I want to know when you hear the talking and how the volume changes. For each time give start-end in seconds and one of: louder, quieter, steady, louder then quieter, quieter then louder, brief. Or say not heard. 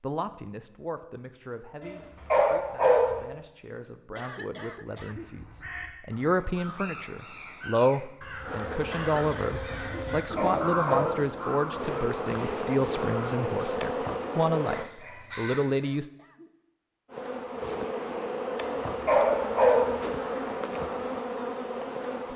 0.0-16.1 louder.